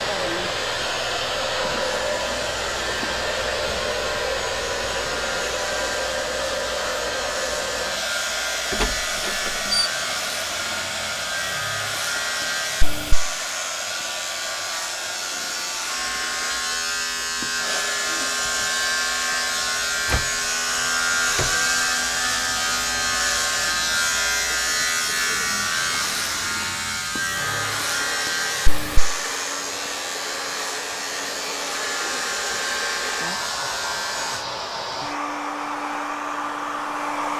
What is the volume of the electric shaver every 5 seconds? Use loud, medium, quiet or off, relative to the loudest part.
medium, medium, medium, loud, loud, loud, medium, off.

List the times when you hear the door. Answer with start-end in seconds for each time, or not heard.
8.7-9.9, 20.1-21.6.